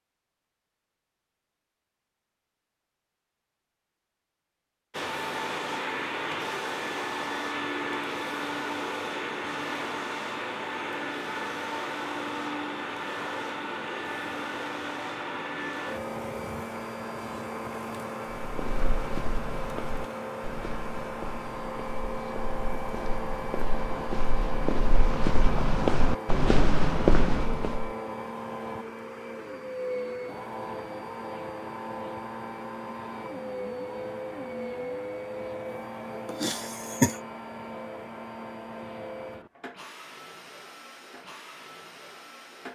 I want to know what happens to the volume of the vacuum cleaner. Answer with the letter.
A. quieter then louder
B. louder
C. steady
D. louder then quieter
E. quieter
E.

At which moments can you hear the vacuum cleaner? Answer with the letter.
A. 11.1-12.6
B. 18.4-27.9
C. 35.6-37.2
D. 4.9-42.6
D.